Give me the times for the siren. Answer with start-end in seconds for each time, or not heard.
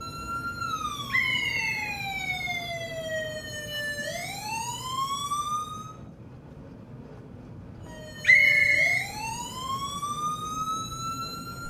0.0-6.0, 7.8-11.6.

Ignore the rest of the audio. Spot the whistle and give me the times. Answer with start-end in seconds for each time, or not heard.
1.1-1.9, 8.2-9.1.